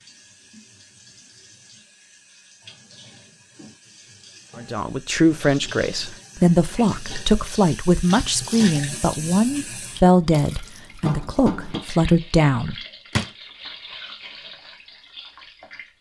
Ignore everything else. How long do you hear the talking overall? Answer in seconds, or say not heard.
8 s.